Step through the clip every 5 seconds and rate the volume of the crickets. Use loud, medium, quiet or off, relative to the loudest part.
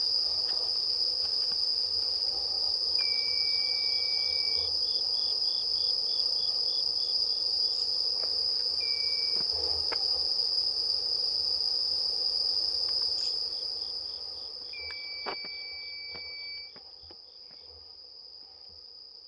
loud, loud, loud, quiet.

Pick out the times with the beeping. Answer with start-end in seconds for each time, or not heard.
3.0-4.7, 8.8-9.4, 14.7-16.8.